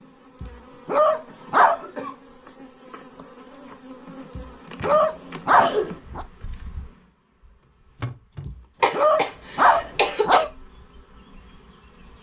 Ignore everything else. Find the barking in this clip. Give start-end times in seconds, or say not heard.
0.4-1.8, 4.3-6.2, 8.4-10.5.